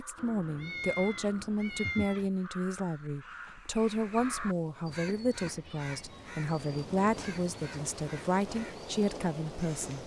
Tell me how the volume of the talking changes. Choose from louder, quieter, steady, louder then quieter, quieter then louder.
steady.